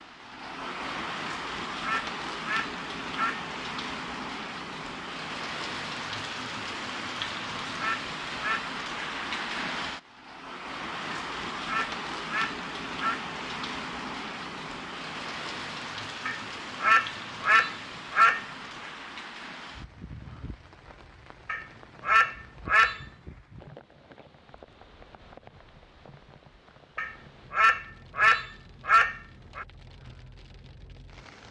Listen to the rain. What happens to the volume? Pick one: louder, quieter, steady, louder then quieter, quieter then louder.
quieter.